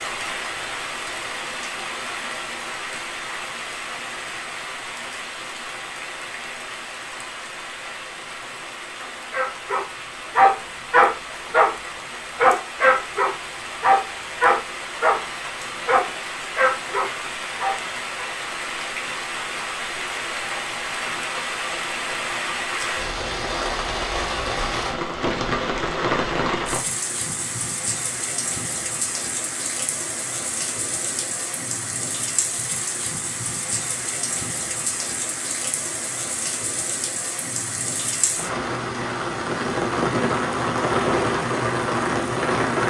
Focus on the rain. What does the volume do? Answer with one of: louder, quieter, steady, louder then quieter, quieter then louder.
louder.